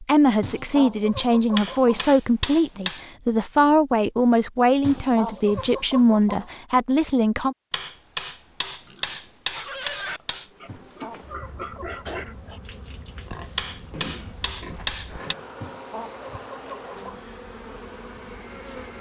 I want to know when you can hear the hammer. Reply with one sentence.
You can hear the hammer from 1.6 to 3.0 s, from 7.7 to 10.4 s and from 13.6 to 15.3 s.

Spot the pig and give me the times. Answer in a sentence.
The pig can be heard from 8.8 to 15.6 s.